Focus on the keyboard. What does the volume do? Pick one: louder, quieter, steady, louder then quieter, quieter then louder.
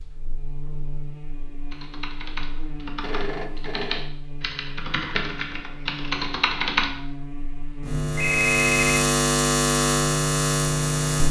louder.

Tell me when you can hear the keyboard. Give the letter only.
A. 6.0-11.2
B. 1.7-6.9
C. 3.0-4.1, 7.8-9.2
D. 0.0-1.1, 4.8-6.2
B.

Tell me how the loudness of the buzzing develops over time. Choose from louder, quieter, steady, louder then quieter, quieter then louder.
louder.